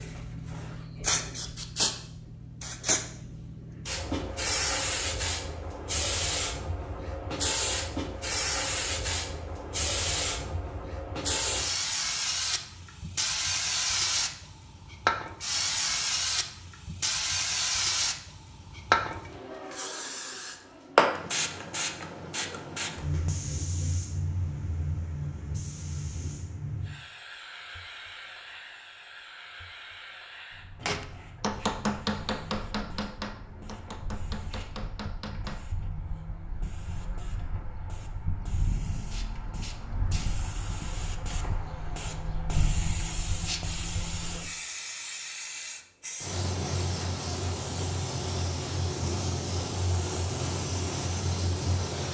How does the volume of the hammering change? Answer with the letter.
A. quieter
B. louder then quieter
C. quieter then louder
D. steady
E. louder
A.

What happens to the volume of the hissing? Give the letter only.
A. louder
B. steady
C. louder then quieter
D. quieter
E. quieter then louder
E.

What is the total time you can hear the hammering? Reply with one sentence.
The hammering can be heard for 5 seconds in total.